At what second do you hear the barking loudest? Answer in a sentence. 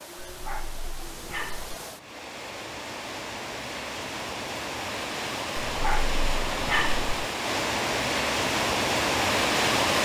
The volume of the barking peaks at 7 seconds.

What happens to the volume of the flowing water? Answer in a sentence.
The loudness of the flowing water goes up.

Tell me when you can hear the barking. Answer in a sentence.
The barking can be heard from 0.1 to 1.8 s and from 5.6 to 7.1 s.